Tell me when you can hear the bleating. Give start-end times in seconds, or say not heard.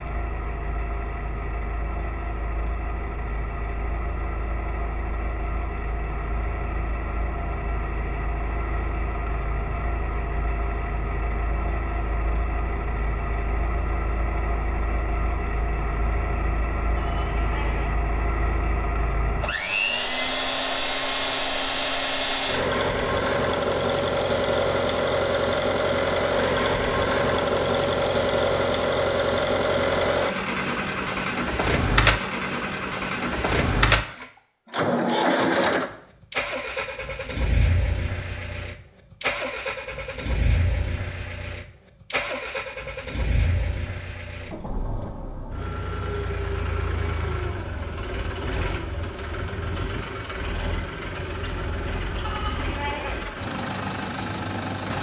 16.9-17.9, 52.2-53.2.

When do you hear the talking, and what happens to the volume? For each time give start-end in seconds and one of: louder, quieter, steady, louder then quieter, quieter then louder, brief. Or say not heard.
not heard.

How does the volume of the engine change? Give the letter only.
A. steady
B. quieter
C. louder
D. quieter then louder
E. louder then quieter
E.